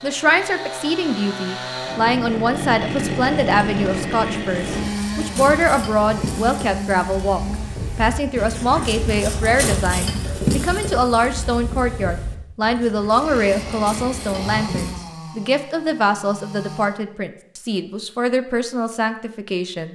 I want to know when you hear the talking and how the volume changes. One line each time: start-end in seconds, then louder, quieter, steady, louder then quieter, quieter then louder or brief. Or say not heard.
0.0-19.8 steady.